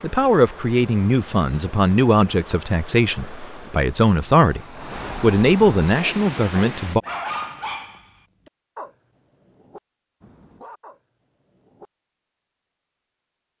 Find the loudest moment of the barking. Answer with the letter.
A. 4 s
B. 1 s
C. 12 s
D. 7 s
D.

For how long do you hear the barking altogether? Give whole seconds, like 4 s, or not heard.
6 s.